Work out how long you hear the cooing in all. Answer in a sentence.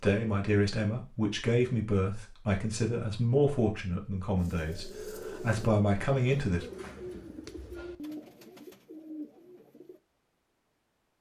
The cooing can be heard for 6 seconds in total.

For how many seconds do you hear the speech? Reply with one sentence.
The speech can be heard for 7 seconds in total.